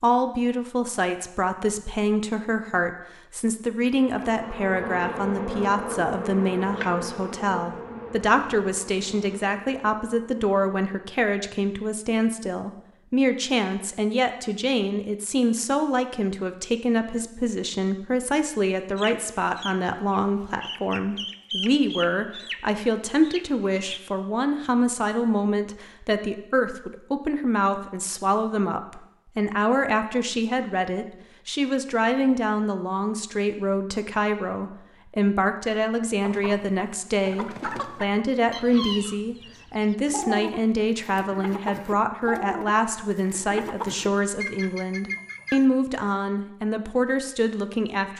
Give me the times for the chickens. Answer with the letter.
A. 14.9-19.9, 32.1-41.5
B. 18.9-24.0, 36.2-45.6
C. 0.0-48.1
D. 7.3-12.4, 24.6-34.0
B.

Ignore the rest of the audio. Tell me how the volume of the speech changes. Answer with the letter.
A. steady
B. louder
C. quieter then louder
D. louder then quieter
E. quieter
A.